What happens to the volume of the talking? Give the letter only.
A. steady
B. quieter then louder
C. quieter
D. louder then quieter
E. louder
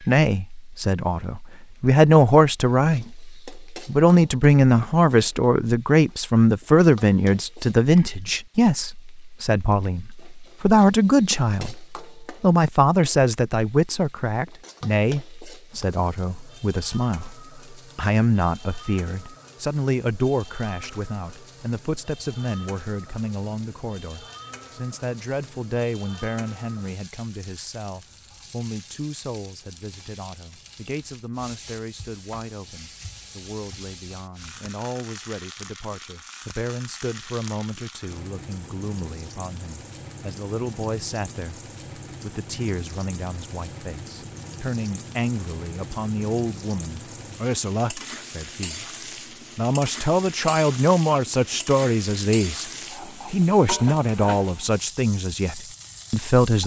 B.